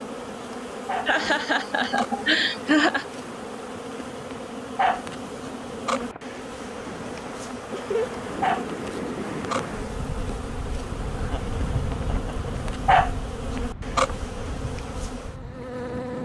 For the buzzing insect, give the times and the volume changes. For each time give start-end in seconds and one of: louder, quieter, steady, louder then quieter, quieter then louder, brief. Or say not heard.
0.0-16.2 steady.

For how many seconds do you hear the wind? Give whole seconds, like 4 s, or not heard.
16 s.